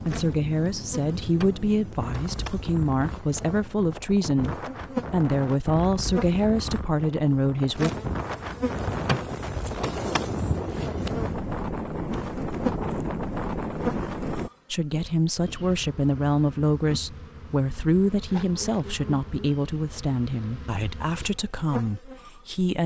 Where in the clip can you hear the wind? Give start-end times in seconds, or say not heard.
0.0-14.5.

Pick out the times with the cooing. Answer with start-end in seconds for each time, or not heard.
not heard.